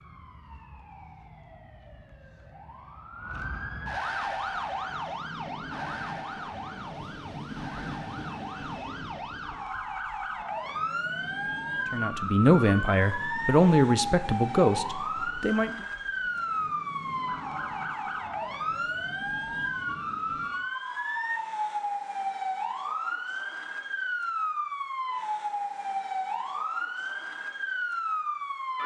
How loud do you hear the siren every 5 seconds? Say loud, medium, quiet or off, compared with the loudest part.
medium, medium, loud, loud, loud, loud.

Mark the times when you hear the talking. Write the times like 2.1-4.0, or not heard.
11.9-15.8.